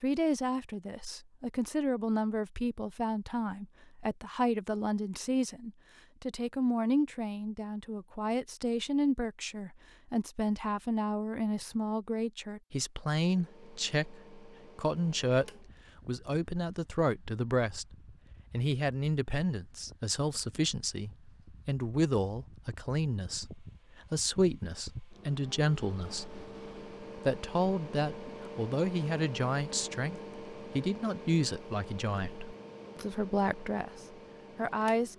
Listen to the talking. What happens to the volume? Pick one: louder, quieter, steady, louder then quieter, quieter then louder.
steady.